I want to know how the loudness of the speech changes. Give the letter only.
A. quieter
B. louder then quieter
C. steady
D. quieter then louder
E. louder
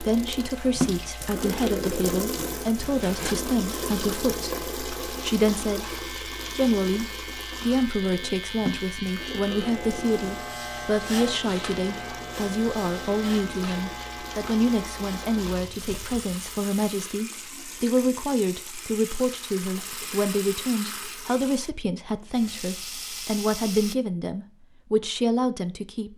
C.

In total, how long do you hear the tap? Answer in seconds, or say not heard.
24 s.